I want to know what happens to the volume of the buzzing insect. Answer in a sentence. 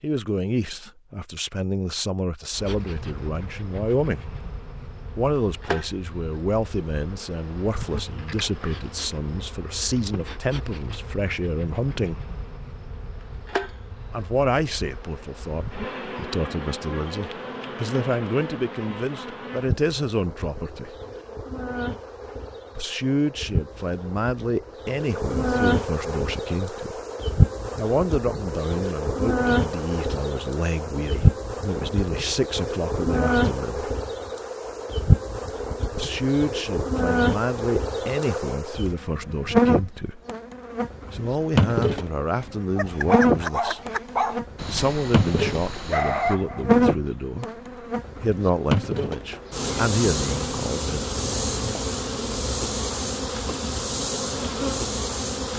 The volume of the buzzing insect goes up.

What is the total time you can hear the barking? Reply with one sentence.
You can hear the barking for 5 seconds altogether.